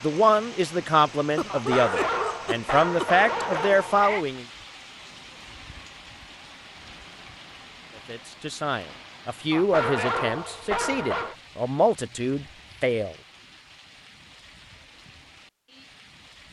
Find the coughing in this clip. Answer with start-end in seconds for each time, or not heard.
1.4-3.1.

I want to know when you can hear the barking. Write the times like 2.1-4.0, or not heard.
1.4-4.2, 9.5-11.3.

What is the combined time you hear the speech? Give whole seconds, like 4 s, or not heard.
10 s.